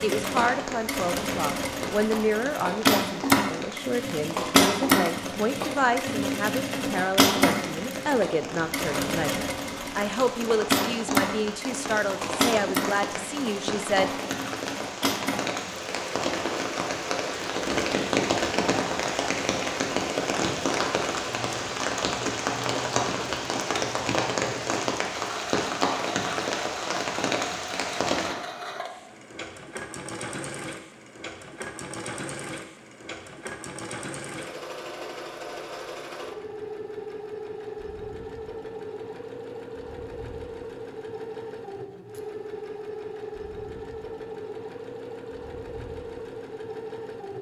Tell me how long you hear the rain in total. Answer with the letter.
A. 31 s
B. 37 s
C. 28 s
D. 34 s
C.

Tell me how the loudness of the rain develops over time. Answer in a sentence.
The volume of the rain goes up.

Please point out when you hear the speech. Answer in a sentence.
You can hear the speech from 0.0 to 14.1 s.